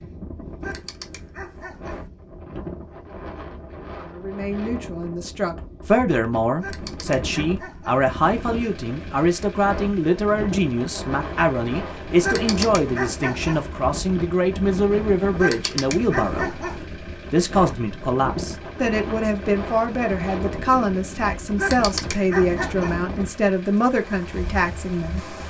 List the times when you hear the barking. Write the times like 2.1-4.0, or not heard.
0.6-2.1, 6.5-8.1, 12.2-13.7, 15.3-16.9, 21.6-23.1.